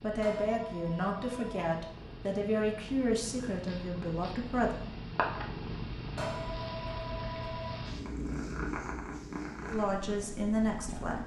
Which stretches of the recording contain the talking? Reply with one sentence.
You can hear the talking from 0.0 to 4.8 s and from 9.7 to 11.2 s.